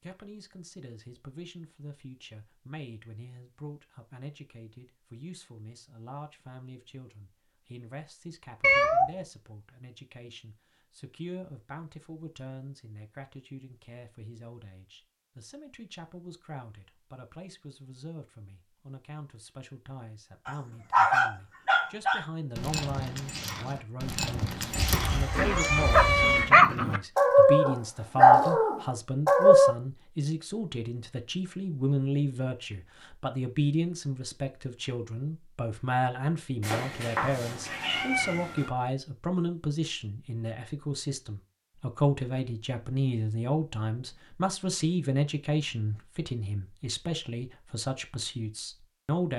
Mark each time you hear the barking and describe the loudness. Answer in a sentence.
The barking can be heard from 20.4 to 29.8 s, getting quieter then louder.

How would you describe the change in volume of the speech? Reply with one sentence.
The loudness of the speech goes up.